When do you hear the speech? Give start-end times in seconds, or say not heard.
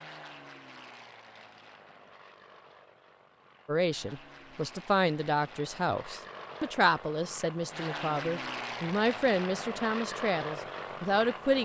3.6-11.6.